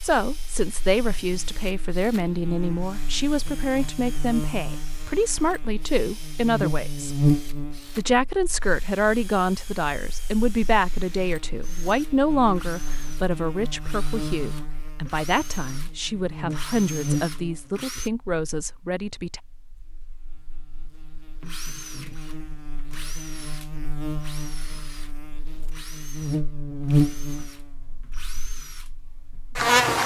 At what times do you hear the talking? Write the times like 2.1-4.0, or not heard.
0.0-7.2, 8.0-19.4.